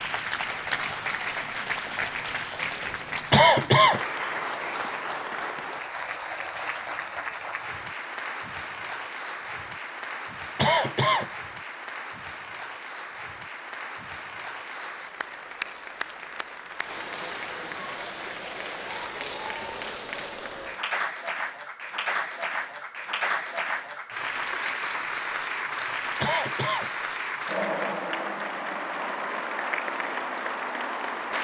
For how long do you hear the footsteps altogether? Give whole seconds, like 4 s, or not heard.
not heard.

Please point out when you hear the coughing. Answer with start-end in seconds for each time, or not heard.
3.3-4.0, 10.6-11.3, 26.2-26.9.